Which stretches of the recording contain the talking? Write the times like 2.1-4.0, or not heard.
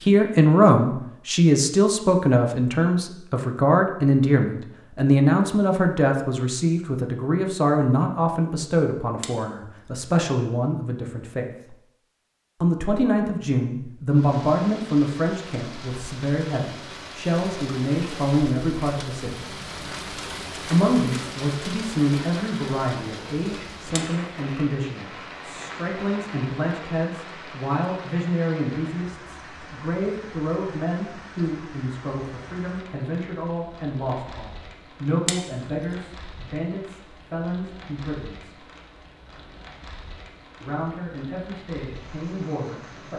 0.0-11.8, 12.6-19.4, 20.7-38.5, 40.6-43.1.